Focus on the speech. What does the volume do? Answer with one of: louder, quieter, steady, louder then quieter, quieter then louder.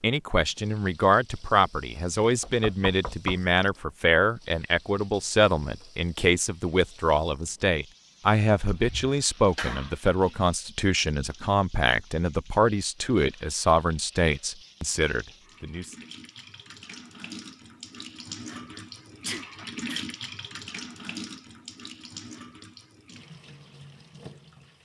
steady.